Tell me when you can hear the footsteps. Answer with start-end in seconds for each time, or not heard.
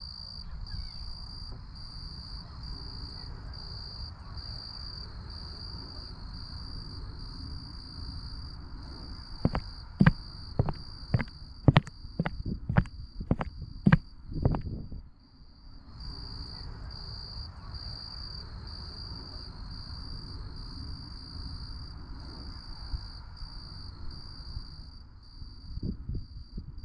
9.4-14.6.